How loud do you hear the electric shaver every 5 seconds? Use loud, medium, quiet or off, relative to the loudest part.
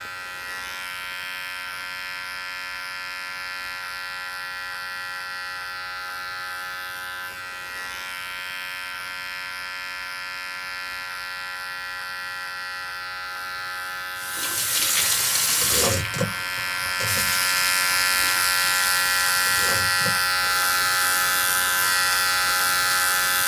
medium, medium, medium, loud, loud.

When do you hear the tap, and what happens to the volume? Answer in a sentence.
The tap can be heard from 14.2 to 23.4 s, getting quieter.